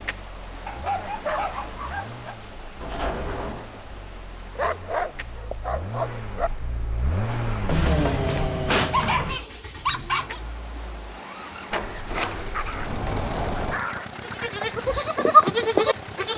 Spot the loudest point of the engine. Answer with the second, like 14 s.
8 s.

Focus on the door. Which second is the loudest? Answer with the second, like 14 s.
9 s.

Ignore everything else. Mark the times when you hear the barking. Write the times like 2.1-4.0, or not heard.
0.7-2.4, 4.5-6.5, 8.9-10.4, 12.5-14.6.